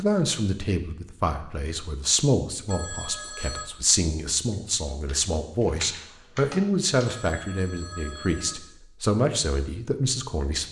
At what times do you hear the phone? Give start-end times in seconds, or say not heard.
2.6-3.6, 7.0-8.6.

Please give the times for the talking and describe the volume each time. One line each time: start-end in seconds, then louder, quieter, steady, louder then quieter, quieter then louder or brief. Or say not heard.
0.0-10.6 steady.